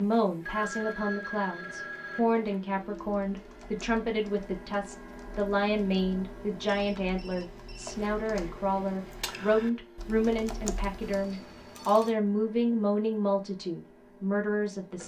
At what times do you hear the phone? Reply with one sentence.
You can hear the phone from 0.4 to 2.2 s, from 6.7 to 8.0 s and from 11.0 to 12.1 s.